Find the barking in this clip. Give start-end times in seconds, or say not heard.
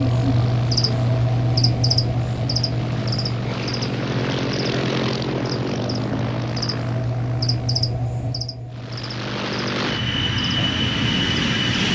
not heard.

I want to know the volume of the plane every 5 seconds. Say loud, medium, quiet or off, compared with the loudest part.
medium, medium, loud.